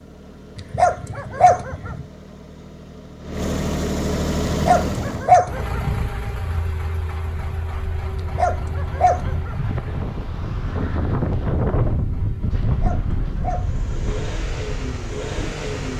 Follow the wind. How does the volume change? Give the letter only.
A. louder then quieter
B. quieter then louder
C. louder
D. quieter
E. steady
A.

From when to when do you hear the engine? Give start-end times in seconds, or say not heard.
0.0-15.9.